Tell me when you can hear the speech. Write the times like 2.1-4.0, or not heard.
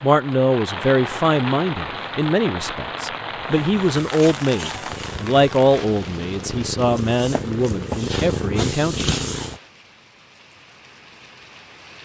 0.0-9.1.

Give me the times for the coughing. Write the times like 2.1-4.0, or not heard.
not heard.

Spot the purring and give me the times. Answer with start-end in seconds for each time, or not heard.
3.4-9.6.